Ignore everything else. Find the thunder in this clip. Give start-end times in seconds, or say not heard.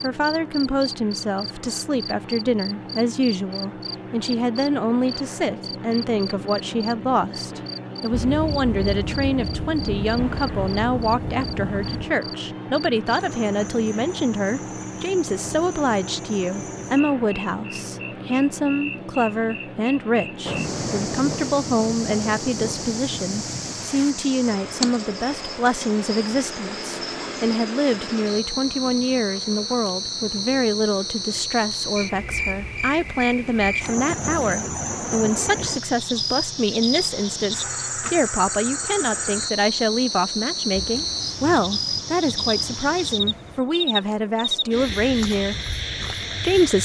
8.1-12.2, 20.4-24.1, 40.7-43.6.